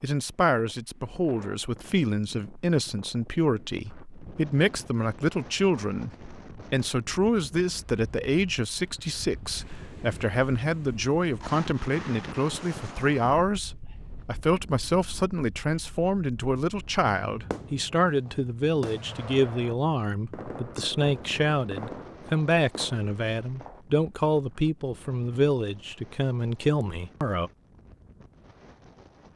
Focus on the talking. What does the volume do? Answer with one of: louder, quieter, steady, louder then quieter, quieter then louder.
steady.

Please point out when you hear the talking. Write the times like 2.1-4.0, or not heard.
0.0-27.5.